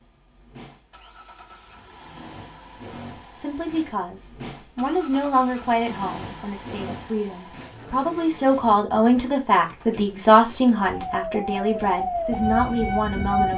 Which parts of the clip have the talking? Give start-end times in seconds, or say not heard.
3.1-13.5.